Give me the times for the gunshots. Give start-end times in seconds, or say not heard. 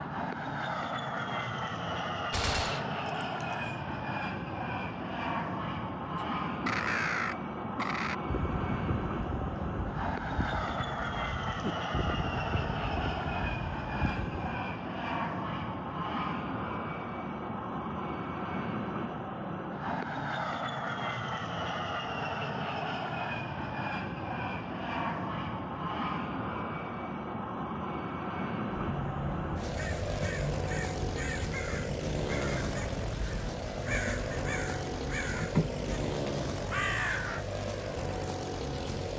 2.3-3.8.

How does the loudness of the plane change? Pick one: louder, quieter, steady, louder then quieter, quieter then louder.
steady.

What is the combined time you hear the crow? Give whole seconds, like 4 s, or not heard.
17 s.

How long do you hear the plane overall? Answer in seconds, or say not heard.
39 s.